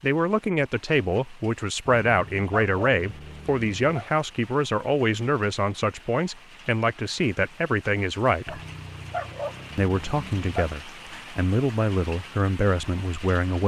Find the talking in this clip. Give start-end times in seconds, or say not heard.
0.0-8.6, 9.8-13.6.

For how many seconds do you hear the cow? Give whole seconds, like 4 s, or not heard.
not heard.